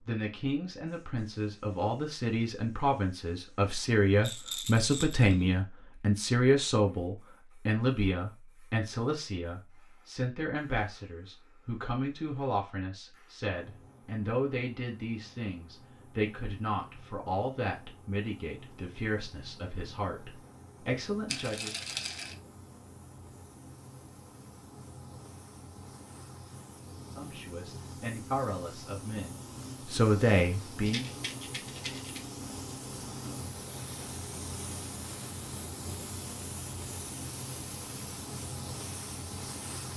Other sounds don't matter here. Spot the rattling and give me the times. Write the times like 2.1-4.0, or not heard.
4.2-5.5, 21.2-22.4, 30.8-32.2.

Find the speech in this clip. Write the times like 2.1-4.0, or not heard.
0.0-21.8, 27.1-31.1.